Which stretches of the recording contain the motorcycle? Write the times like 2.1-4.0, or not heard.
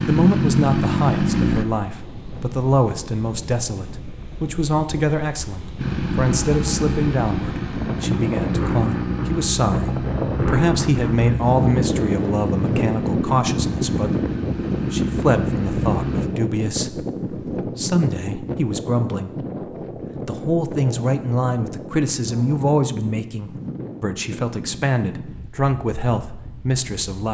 0.0-1.6, 5.8-16.3.